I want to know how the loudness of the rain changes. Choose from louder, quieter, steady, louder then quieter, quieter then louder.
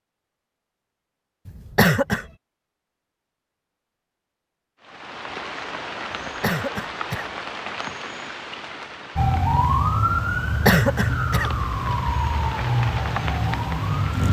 quieter then louder.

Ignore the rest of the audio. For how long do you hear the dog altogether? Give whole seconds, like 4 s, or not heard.
not heard.